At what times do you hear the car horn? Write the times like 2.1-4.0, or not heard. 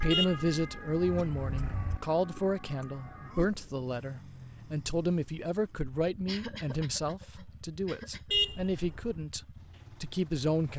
0.1-2.0, 8.3-9.2.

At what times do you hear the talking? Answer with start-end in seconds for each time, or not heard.
0.0-10.7.